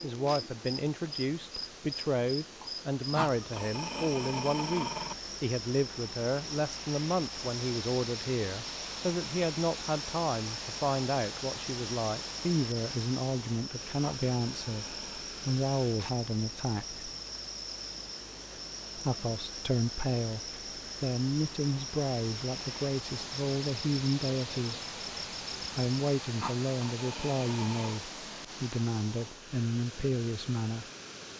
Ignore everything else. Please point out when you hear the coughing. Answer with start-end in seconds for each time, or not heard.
not heard.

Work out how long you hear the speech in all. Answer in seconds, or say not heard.
28 s.